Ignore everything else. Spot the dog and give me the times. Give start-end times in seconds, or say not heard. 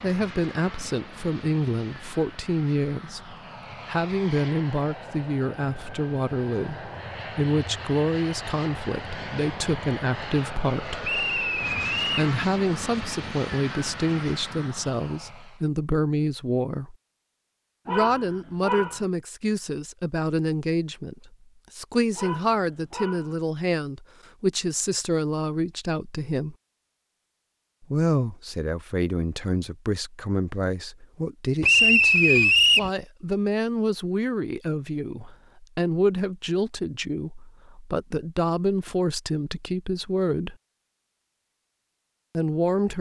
17.9-19.1, 22.1-23.4.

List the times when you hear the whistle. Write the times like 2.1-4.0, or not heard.
11.0-12.3, 31.6-32.9.